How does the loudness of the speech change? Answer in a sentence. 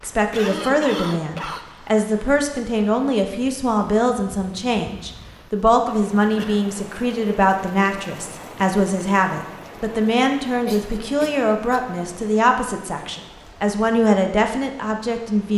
The volume of the speech stays about the same.